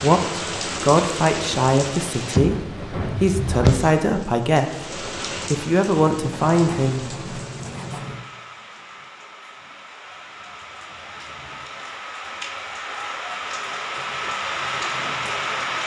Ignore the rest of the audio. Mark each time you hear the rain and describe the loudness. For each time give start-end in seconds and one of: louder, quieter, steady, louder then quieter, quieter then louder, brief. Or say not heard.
0.0-15.8 quieter then louder.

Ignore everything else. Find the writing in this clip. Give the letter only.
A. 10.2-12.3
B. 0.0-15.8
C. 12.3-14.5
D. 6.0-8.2
D.